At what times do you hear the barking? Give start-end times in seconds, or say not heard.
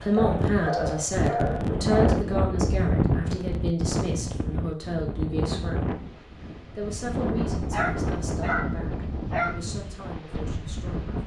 0.1-2.2, 7.7-9.6.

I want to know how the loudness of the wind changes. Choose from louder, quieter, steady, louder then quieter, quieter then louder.
quieter.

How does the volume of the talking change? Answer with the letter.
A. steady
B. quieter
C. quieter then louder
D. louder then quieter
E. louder
B.